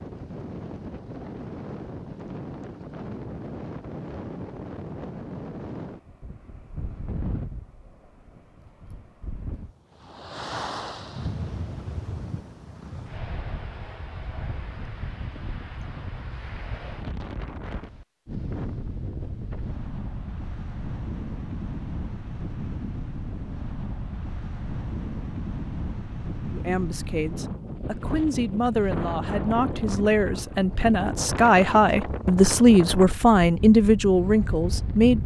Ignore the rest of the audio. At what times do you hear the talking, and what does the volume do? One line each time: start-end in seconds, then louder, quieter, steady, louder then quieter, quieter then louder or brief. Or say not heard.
26.5-35.2 louder.